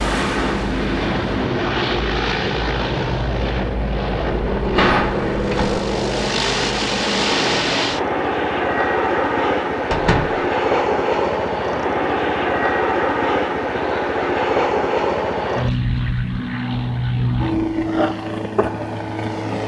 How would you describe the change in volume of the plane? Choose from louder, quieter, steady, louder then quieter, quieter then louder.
steady.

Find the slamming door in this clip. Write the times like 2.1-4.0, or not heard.
4.5-5.8, 9.9-10.4.